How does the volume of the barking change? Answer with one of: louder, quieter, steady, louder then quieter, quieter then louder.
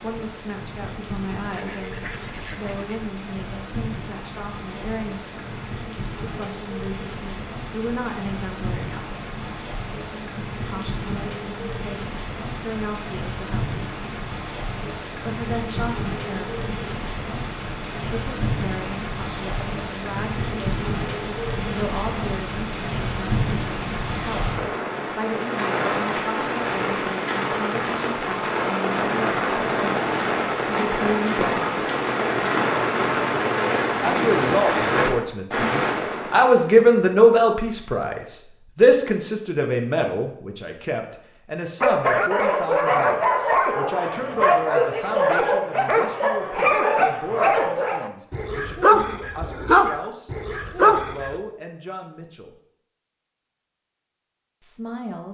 steady.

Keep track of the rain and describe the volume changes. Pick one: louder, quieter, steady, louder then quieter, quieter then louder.
louder.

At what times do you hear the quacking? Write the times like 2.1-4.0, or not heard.
1.6-3.1.